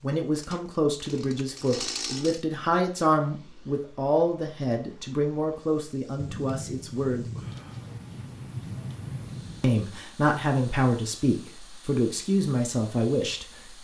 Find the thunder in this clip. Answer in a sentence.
You can hear the thunder from 6.2 to 9.7 s.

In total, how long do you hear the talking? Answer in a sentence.
You can hear the talking for 11 seconds altogether.